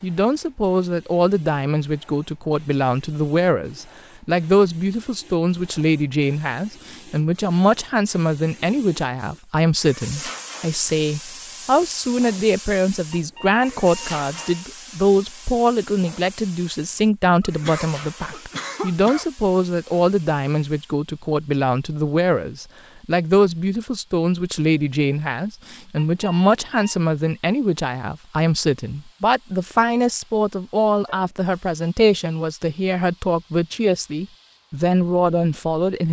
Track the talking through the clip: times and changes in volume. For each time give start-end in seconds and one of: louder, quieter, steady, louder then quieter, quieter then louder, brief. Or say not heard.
0.0-36.0 steady.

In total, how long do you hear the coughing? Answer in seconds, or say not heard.
2 s.